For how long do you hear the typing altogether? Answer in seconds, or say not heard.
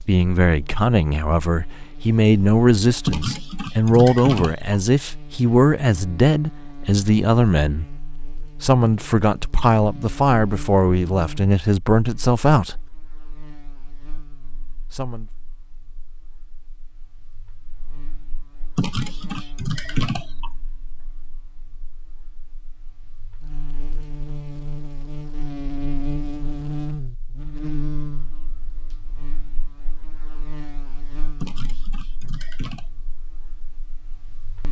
5 s.